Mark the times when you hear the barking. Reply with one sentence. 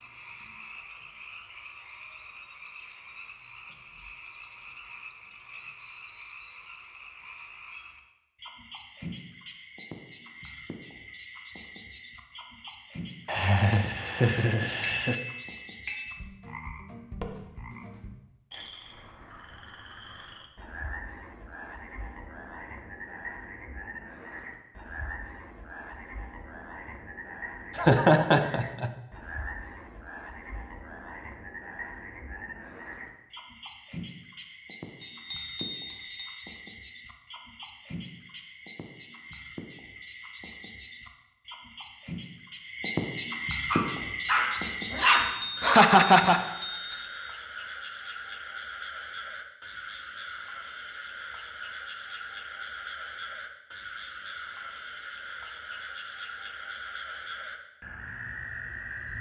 You can hear the barking from 43.6 to 46.4 s.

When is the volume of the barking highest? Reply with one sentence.
The volume of the barking peaks at 45 seconds.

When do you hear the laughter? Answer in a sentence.
The laughter can be heard from 13.2 to 15.2 s, from 27.8 to 28.9 s and from 45.6 to 46.4 s.